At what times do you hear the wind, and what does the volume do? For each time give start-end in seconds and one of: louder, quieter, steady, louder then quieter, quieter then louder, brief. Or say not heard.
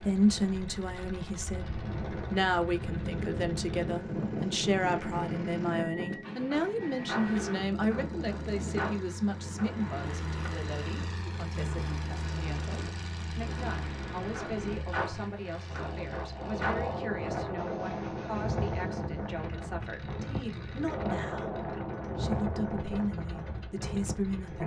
0.0-24.6 quieter then louder.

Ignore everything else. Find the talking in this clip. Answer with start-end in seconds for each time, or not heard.
0.0-1.7, 2.3-24.6.